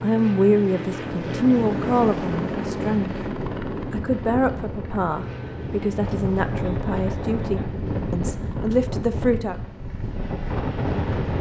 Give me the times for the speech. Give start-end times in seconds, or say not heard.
0.0-3.1, 3.9-9.6.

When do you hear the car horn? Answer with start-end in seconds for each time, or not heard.
not heard.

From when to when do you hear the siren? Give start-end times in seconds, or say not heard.
not heard.